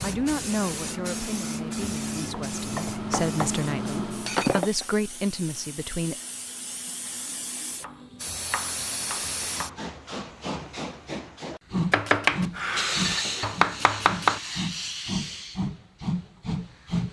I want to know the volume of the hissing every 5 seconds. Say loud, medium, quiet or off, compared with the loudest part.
medium, medium, loud, loud.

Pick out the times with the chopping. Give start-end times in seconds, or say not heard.
2.0-3.5, 7.8-9.8, 11.9-14.4.